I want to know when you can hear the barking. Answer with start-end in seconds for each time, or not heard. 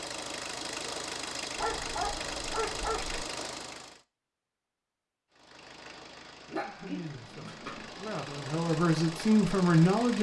1.6-3.2, 6.5-7.9.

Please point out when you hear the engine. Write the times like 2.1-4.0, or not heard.
0.0-4.0, 5.3-10.1.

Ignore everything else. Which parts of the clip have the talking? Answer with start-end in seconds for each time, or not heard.
6.5-10.1.